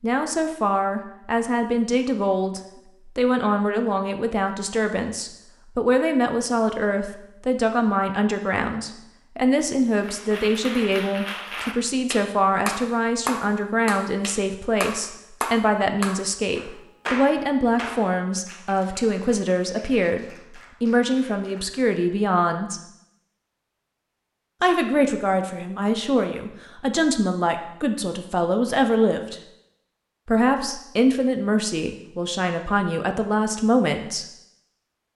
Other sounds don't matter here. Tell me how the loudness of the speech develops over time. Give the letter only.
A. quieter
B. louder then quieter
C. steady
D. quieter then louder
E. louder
C.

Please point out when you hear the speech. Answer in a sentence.
The speech can be heard from 0.0 to 22.8 s, from 24.6 to 29.4 s and from 30.2 to 34.2 s.